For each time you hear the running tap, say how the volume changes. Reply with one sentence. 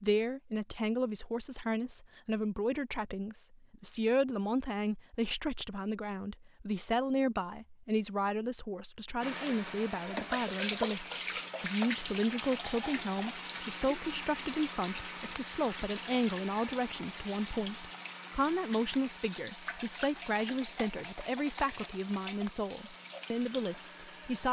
You can hear the running tap from 9.2 to 24.4 s, getting quieter.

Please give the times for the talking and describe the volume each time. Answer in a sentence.
The talking can be heard from 0.0 to 24.4 s, at a steady volume.